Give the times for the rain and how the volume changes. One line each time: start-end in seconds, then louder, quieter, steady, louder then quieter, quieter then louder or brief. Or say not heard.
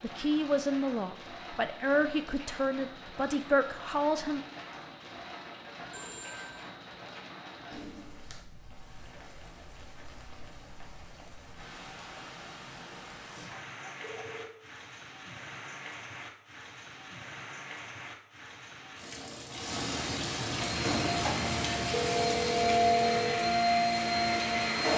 0.0-24.9 louder.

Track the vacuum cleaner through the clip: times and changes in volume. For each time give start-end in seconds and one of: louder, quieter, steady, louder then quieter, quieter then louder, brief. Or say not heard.
20.6-24.9 louder.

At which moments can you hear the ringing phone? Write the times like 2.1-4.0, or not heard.
5.9-6.7, 13.4-14.6, 20.9-23.4.